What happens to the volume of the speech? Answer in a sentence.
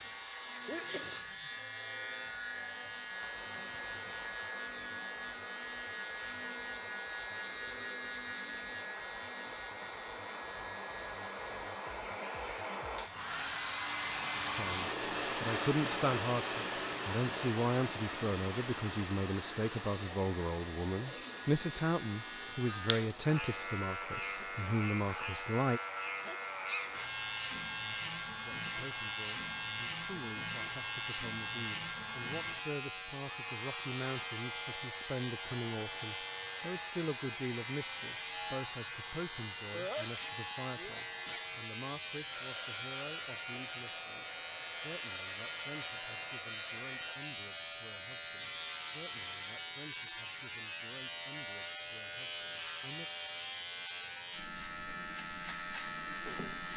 The volume of the speech goes down.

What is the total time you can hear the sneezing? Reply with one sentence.
You can hear the sneezing for 3 seconds altogether.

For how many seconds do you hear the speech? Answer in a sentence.
You can hear the speech for 36 seconds altogether.